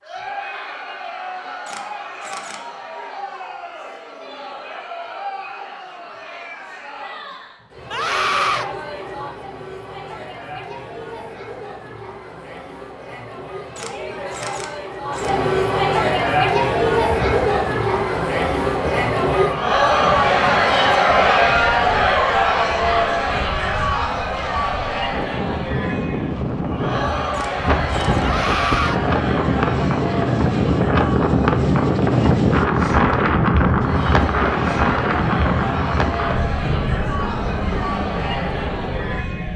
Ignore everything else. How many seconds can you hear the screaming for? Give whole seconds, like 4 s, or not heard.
2 s.